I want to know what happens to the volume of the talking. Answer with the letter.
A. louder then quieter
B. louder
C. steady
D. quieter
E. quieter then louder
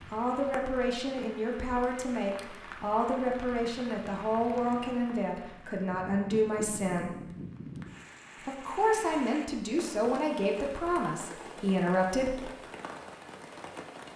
C.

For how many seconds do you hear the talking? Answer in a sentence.
The talking can be heard for 11 seconds in total.